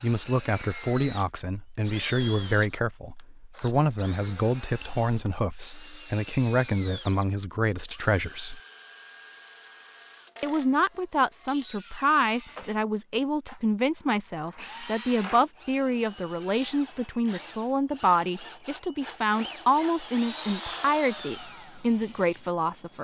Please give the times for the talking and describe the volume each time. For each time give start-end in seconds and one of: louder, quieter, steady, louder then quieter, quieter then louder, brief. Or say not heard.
0.0-8.6 steady
10.4-22.9 steady.